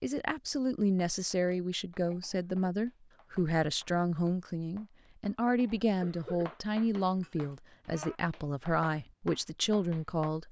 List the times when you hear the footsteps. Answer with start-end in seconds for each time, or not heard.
not heard.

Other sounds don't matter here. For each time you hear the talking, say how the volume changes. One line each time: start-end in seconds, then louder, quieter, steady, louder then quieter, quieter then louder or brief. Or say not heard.
0.0-10.4 steady.